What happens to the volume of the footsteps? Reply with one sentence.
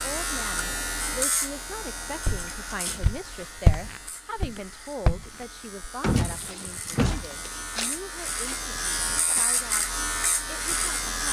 The loudness of the footsteps goes down.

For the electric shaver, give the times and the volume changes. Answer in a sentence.
You can hear the electric shaver from 0.0 to 11.2 s, getting quieter then louder.